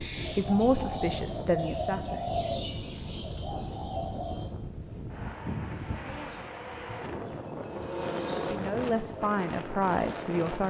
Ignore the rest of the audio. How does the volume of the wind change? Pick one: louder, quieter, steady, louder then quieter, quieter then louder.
steady.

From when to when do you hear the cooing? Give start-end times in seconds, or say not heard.
0.0-4.5.